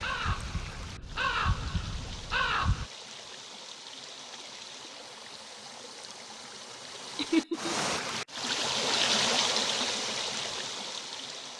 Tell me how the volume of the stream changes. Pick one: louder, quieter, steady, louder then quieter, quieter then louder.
louder.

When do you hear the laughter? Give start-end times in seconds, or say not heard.
7.2-7.8.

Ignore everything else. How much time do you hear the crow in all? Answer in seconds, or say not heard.
3 s.